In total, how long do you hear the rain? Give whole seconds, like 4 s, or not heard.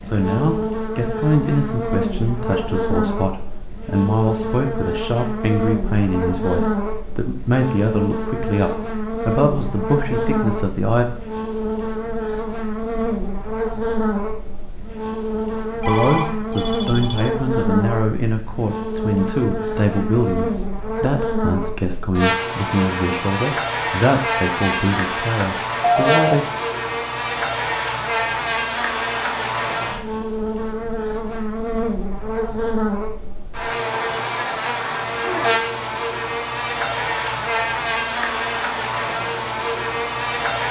not heard.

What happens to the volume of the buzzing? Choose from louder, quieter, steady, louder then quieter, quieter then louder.
steady.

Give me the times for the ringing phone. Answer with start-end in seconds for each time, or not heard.
15.8-17.3, 25.8-26.4.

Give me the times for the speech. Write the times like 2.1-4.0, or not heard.
0.0-11.1, 15.8-26.4.